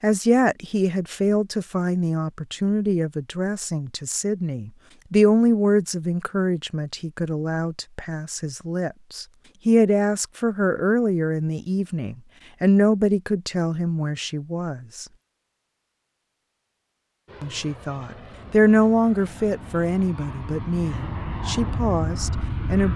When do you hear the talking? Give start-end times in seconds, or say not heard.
0.0-15.1, 17.4-22.9.